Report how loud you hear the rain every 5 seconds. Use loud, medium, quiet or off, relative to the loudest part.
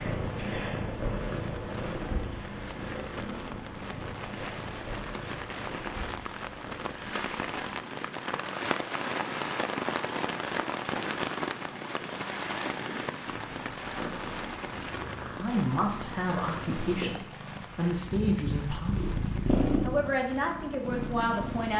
medium, loud, loud, medium, quiet.